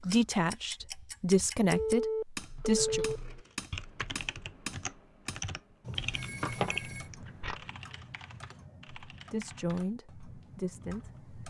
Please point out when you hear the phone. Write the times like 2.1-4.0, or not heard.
1.7-3.2, 6.0-7.1.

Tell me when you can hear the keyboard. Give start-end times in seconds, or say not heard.
2.4-11.2.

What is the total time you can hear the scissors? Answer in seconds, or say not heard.
2 s.